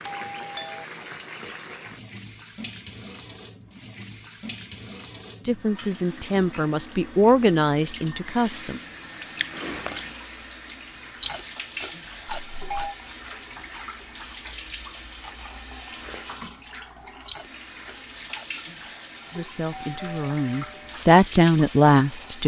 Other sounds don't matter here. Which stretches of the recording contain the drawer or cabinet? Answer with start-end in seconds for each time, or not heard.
not heard.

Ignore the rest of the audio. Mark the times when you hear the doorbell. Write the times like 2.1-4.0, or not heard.
0.0-0.8, 12.5-12.9, 19.7-21.0.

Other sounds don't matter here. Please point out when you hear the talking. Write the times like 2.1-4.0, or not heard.
5.5-8.8, 19.3-22.4.